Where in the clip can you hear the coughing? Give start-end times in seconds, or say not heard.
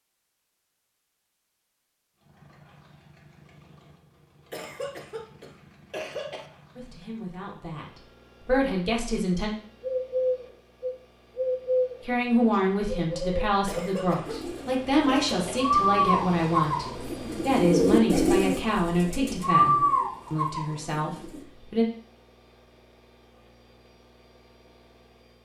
4.5-6.5, 13.7-15.6.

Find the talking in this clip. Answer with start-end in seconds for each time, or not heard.
6.8-9.5, 12.0-21.9.